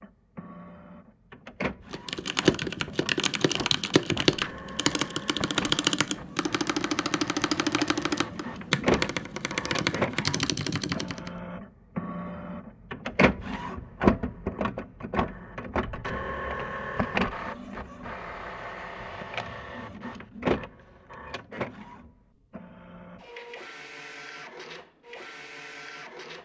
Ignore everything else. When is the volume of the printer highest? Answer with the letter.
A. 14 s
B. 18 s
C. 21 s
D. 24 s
A.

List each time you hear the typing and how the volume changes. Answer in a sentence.
You can hear the typing from 1.9 to 11.3 s, at a steady volume.